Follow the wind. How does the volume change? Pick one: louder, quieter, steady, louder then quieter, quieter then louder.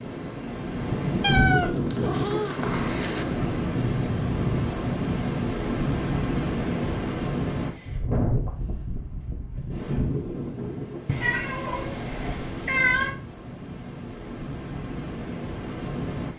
quieter.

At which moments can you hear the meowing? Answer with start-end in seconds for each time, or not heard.
1.2-3.2, 11.1-13.2.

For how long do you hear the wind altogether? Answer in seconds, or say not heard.
16 s.